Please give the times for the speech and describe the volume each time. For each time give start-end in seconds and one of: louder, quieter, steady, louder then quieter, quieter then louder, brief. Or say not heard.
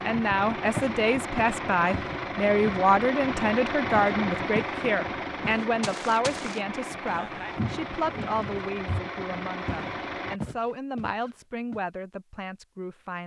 0.0-13.2 quieter.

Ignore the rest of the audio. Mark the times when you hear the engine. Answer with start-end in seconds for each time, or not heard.
0.0-10.4.